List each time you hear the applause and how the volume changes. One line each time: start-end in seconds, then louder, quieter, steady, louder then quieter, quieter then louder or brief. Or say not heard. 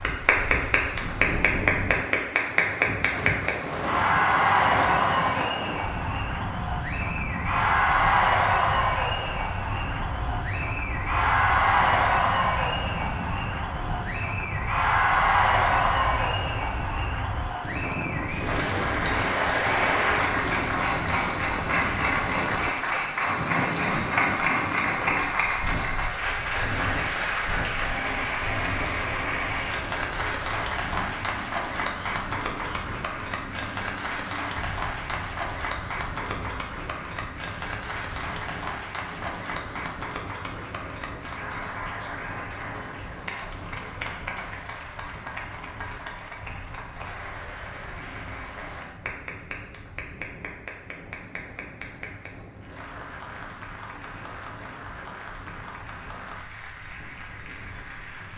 0.0-58.3 quieter.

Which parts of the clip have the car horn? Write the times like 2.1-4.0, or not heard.
not heard.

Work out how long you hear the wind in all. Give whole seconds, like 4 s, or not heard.
58 s.